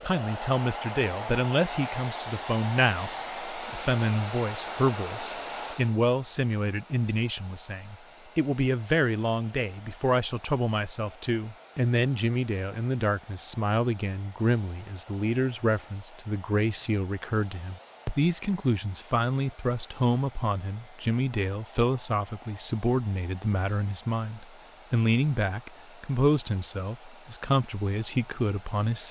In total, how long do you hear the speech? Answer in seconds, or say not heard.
29 s.